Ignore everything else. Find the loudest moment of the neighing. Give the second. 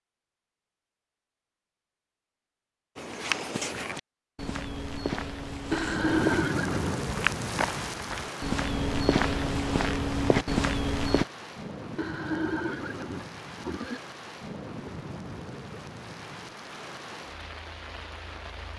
6 s.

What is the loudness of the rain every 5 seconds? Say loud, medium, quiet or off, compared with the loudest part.
off, loud, medium, medium.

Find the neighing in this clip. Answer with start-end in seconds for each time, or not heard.
5.7-7.0, 11.9-14.0.